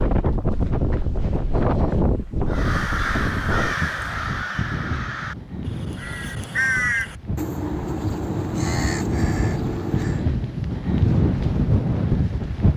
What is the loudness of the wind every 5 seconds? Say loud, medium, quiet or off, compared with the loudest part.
loud, medium, loud.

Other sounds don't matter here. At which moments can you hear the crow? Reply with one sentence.
The crow can be heard from 2.5 to 10.2 s.